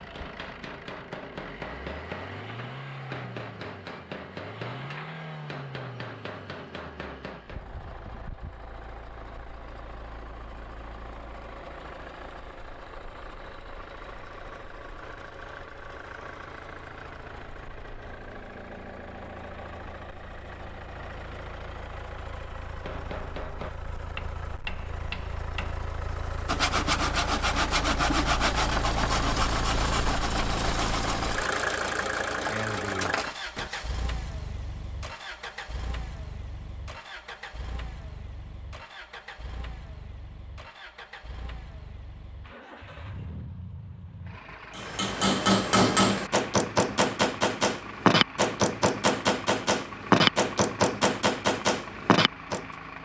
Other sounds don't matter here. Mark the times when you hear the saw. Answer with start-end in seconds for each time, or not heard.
26.4-34.0.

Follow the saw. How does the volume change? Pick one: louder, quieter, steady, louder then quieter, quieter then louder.
quieter.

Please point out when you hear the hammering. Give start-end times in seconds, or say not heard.
0.0-7.8, 22.6-25.9, 44.8-52.6.